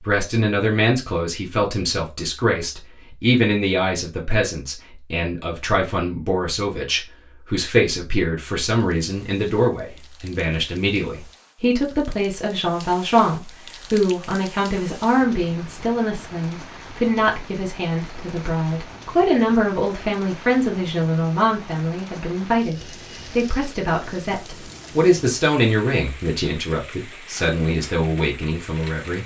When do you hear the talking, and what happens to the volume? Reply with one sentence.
The talking can be heard from 0.0 to 29.2 s, at a steady volume.